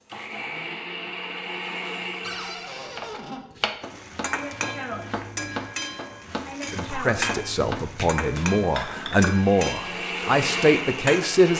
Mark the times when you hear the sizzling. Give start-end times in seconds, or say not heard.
3.8-11.4.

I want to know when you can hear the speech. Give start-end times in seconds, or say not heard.
6.7-11.5.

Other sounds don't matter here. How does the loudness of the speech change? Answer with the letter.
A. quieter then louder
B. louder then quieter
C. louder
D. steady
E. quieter
C.